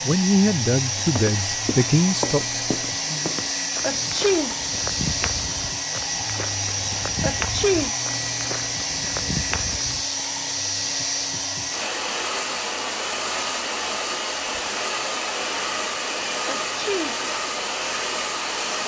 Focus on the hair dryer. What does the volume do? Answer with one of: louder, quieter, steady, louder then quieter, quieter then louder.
steady.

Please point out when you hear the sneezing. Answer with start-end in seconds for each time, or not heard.
3.8-4.5, 7.2-8.0, 16.4-17.1.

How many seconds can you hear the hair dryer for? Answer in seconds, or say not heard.
19 s.